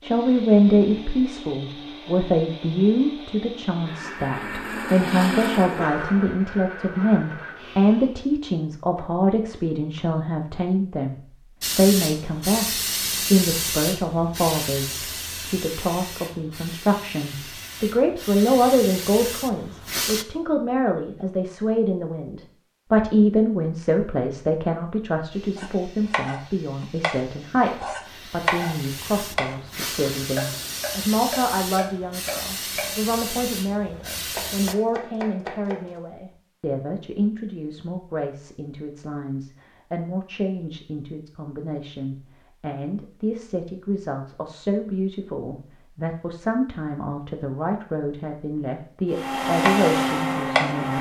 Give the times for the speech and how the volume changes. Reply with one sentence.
The speech can be heard from 0.0 to 50.9 s, getting quieter.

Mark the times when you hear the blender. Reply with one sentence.
The blender can be heard from 0.0 to 8.2 s and from 49.1 to 50.9 s.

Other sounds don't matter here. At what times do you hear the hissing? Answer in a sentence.
The hissing can be heard from 11.6 to 20.2 s and from 25.3 to 34.8 s.